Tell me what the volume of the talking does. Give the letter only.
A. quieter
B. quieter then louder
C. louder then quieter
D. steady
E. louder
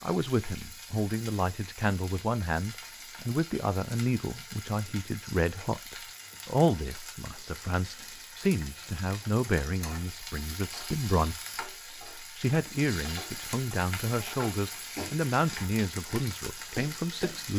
D.